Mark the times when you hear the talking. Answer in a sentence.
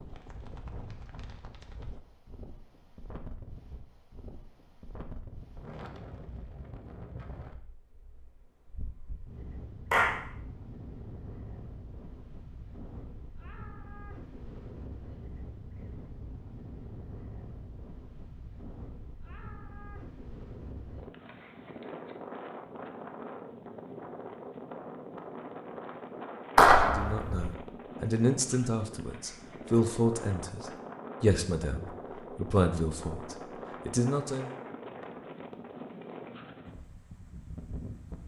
You can hear the talking from 26.8 to 34.5 s.